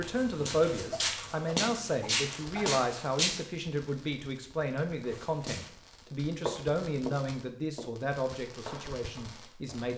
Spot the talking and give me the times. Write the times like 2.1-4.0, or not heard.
0.0-9.9.